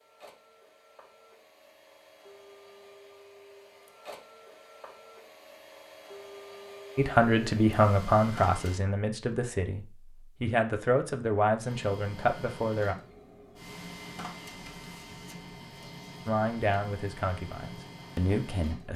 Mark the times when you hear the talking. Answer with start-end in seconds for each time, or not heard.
7.0-12.9, 16.2-18.9.